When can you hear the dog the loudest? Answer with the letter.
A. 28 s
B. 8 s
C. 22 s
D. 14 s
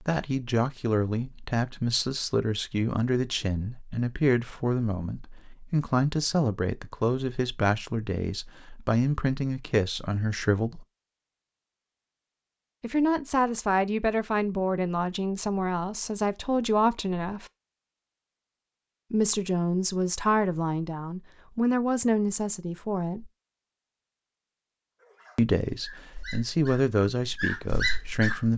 A.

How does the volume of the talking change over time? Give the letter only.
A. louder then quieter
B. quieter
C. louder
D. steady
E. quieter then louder
D.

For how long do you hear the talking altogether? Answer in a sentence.
You can hear the talking for 23 seconds altogether.